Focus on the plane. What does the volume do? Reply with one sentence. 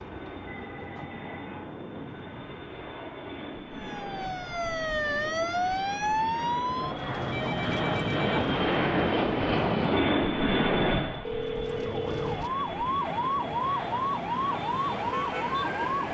The loudness of the plane goes up, then down.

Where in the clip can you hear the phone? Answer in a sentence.
You can hear the phone from 0.5 to 1.6 s, from 7.3 to 8.4 s and from 11.2 to 12.5 s.